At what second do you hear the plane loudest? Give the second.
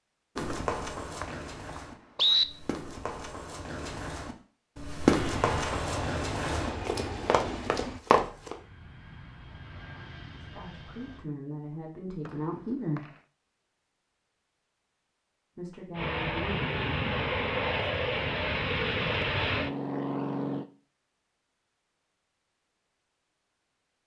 19 s.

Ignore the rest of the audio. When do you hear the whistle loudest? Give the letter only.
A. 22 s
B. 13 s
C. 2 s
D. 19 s
C.